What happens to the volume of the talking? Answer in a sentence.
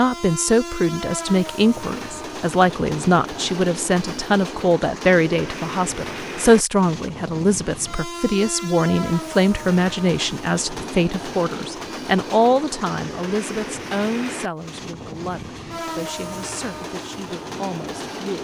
The loudness of the talking goes down.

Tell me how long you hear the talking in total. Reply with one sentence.
You can hear the talking for 18 seconds altogether.